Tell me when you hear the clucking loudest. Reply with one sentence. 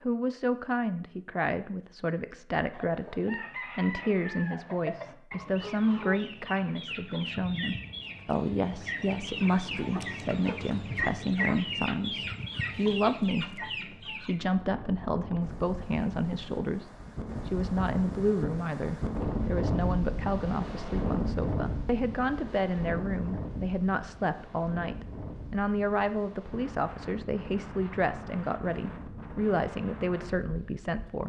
The volume of the clucking peaks at 12 seconds.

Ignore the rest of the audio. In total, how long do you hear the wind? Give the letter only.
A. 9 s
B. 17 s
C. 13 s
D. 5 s
B.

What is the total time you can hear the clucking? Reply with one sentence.
You can hear the clucking for 12 seconds altogether.